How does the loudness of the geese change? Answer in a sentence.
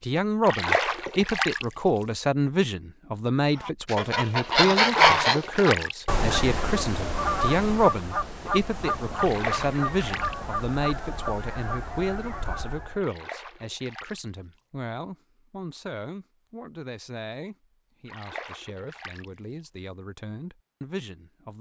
The volume of the geese goes down.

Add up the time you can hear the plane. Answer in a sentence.
You can't hear the plane here.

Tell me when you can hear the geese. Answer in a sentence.
You can hear the geese from 3.5 to 13.1 s.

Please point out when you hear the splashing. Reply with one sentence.
The splashing can be heard from 0.4 to 1.6 s, from 4.7 to 6.0 s, from 9.2 to 10.3 s, from 13.0 to 14.2 s and from 18.1 to 19.2 s.